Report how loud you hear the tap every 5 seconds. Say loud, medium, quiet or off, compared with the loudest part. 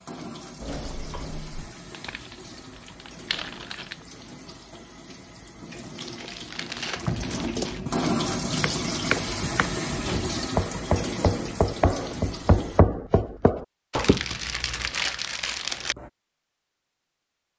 quiet, loud, loud, off.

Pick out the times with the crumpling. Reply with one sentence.
You can hear the crumpling from 1.9 to 4.0 s, from 6.0 to 7.8 s and from 13.9 to 15.9 s.